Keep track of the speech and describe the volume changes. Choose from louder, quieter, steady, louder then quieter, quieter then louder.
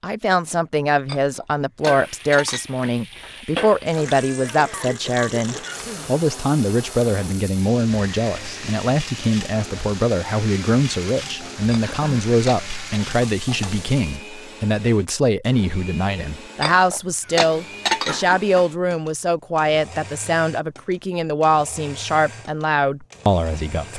steady.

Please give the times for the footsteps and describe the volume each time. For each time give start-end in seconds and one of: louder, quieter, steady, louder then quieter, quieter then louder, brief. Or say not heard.
not heard.